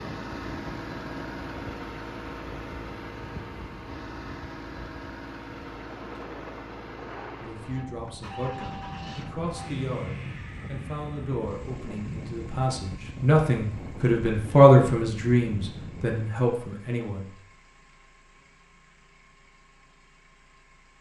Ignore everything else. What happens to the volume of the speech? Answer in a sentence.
The volume of the speech goes up, then down.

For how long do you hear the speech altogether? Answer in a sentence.
The speech can be heard for 10 seconds in total.